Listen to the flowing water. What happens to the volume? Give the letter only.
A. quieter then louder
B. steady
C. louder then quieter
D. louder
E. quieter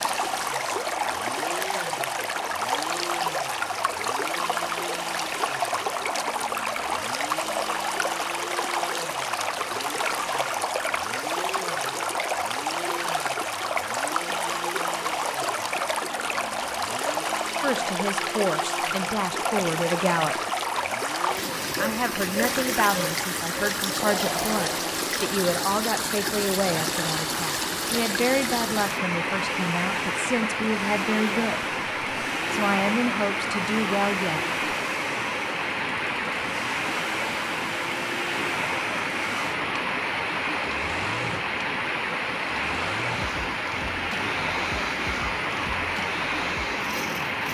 B.